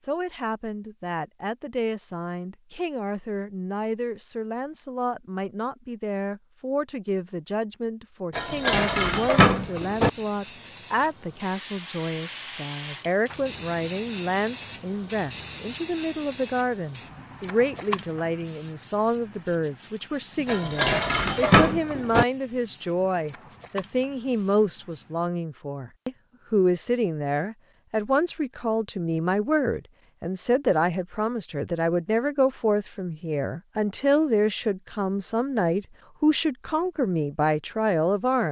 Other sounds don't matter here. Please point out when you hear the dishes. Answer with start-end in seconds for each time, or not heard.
8.3-10.1, 20.4-22.2.